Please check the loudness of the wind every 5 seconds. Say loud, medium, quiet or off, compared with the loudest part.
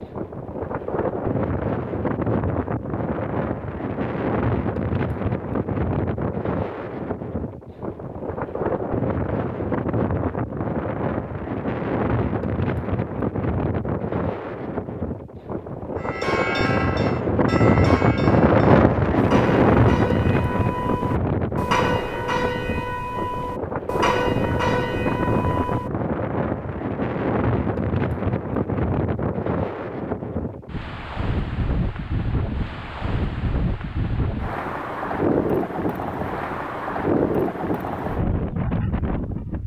medium, medium, medium, loud, medium, medium, medium, medium.